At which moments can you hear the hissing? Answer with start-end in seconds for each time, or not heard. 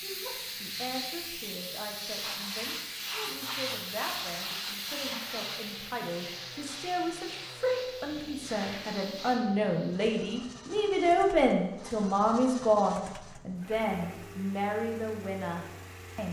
0.0-10.0.